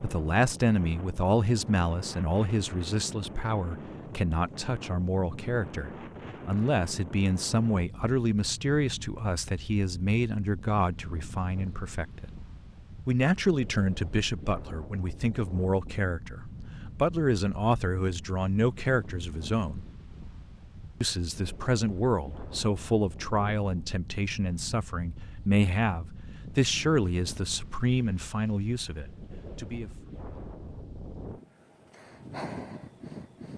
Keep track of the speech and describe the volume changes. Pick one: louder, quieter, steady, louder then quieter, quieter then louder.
steady.